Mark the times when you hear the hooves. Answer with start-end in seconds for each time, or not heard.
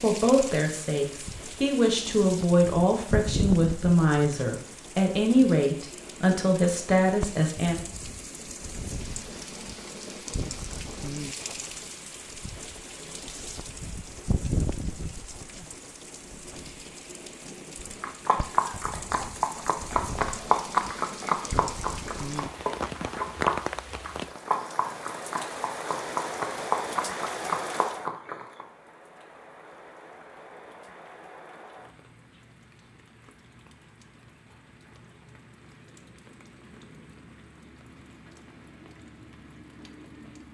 18.0-28.6.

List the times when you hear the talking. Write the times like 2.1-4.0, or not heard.
0.0-7.8.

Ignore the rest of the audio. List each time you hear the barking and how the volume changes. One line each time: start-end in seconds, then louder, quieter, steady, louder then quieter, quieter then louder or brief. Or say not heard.
not heard.